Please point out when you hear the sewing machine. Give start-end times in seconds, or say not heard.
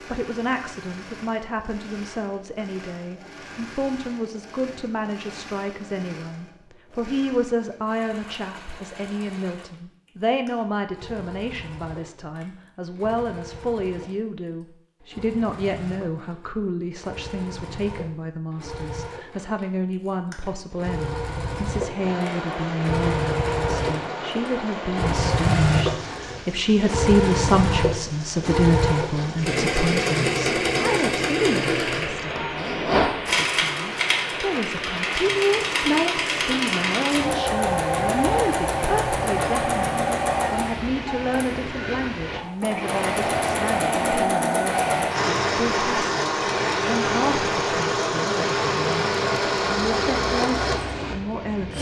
0.0-51.7.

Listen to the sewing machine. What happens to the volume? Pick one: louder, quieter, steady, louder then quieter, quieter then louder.
louder.